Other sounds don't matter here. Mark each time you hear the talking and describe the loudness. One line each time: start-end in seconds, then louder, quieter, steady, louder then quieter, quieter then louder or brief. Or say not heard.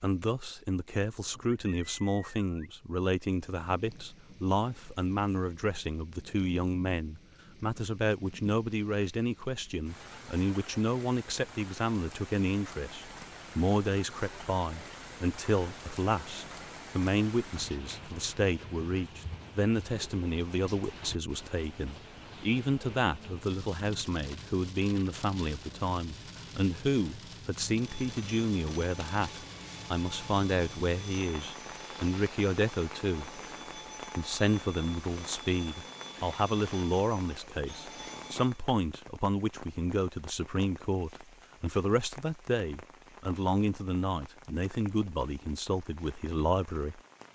0.0-33.4 steady
34.1-47.0 steady.